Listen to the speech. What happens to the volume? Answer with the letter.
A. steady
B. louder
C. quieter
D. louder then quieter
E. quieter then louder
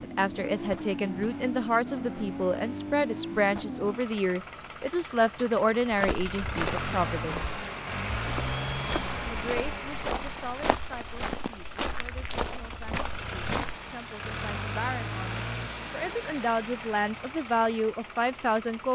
E.